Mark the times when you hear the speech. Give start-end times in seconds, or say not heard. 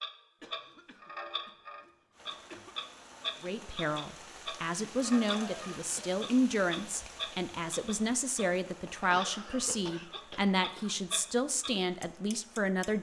3.4-12.9.